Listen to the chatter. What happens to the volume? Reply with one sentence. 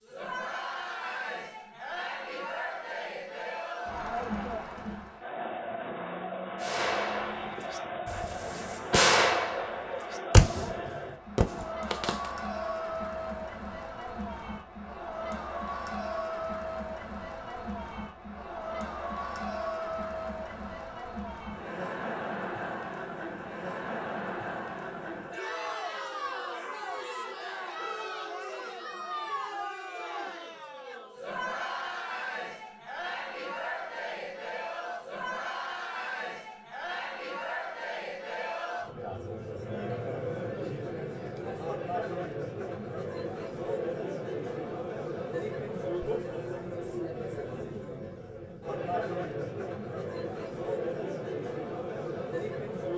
The loudness of the chatter stays about the same.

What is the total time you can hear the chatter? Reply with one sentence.
The chatter can be heard for 53 seconds in total.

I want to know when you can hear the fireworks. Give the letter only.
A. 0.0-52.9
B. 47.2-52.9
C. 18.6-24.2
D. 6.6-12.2
D.